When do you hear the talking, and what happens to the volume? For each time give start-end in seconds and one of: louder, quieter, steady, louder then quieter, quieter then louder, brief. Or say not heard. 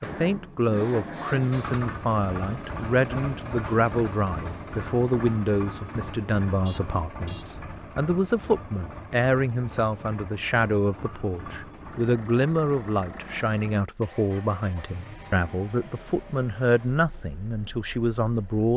0.0-18.7 steady.